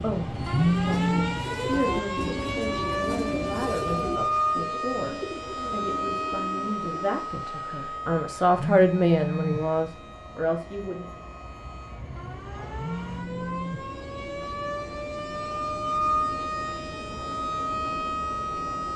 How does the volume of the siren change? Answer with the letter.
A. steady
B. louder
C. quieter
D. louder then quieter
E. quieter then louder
E.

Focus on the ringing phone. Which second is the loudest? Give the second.
1 s.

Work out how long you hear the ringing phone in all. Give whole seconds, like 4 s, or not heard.
3 s.